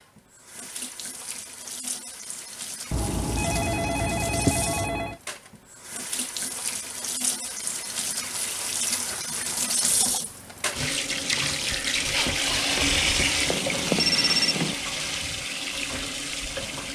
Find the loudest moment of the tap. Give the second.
13 s.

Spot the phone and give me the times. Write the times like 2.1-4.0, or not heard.
2.9-5.2, 13.4-14.8.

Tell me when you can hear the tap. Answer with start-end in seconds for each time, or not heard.
0.0-16.9.